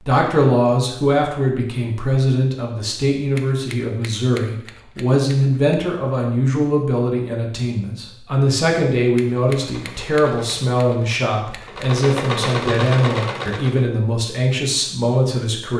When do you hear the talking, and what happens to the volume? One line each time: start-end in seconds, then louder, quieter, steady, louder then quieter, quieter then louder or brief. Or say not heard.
0.1-15.7 steady.